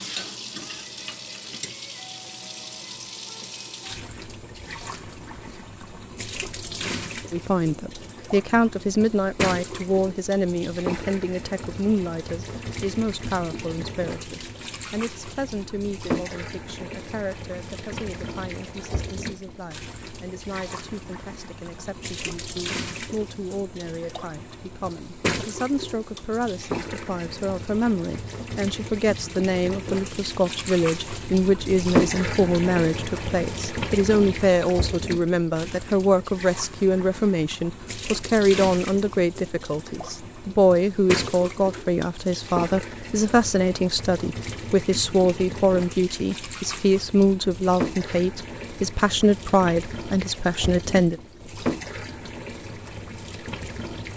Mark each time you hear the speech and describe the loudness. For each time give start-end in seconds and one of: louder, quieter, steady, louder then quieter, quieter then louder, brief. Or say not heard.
7.3-51.2 quieter then louder.